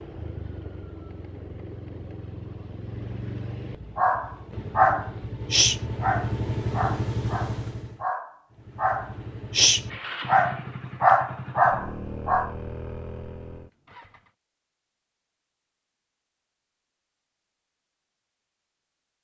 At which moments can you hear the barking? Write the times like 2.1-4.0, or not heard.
4.0-12.5.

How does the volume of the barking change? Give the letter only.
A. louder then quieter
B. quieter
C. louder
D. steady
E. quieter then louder
E.